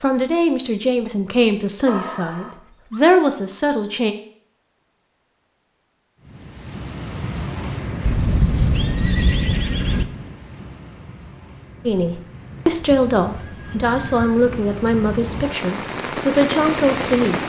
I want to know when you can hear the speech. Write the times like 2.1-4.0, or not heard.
0.0-4.2, 11.8-17.4.